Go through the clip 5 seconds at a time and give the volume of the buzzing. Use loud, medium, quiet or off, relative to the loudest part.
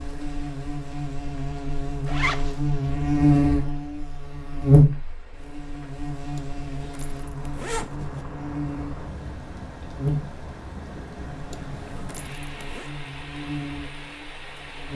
loud, quiet, medium.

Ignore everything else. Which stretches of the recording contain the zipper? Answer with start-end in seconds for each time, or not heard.
2.0-2.5, 6.3-8.2, 11.5-12.9.